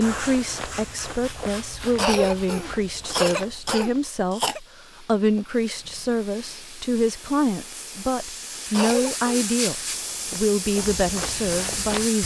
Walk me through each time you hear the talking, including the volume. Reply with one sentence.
The talking can be heard from 0.0 to 12.2 s, at a steady volume.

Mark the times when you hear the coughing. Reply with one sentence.
The coughing can be heard from 1.9 to 4.6 s and from 8.7 to 9.5 s.